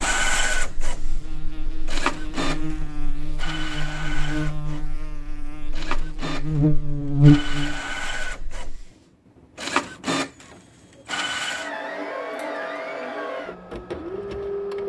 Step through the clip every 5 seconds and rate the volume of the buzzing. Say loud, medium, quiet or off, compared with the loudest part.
quiet, loud, off.